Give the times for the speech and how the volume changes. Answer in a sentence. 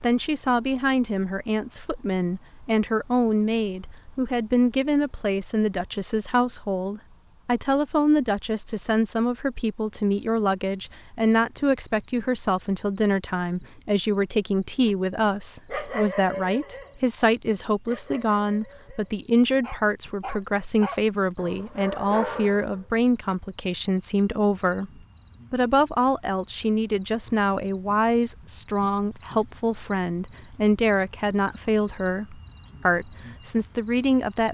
The speech can be heard from 0.0 to 34.5 s, at a steady volume.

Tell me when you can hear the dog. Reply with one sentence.
The dog can be heard from 14.8 to 22.9 s.